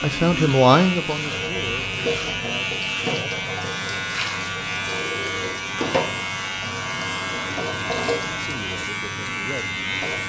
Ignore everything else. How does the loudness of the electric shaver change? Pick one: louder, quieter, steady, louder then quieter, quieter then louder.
steady.